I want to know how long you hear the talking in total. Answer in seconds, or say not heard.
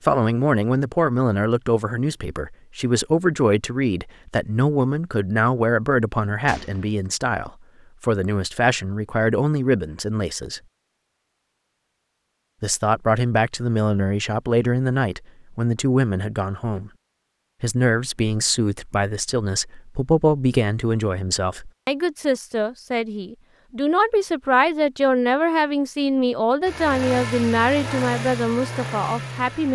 27 s.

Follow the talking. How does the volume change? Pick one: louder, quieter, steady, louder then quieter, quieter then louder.
steady.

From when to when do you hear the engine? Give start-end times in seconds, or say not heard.
26.6-29.7.